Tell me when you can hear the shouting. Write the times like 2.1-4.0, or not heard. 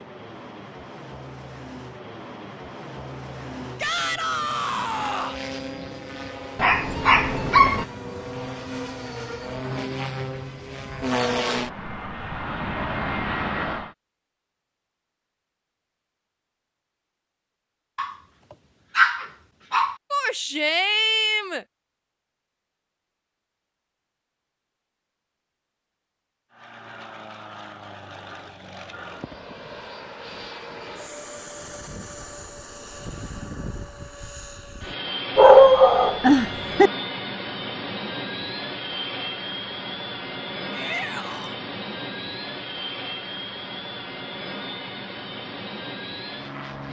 3.8-5.4, 20.1-21.6, 40.7-41.5.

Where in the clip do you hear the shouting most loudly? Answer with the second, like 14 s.
21 s.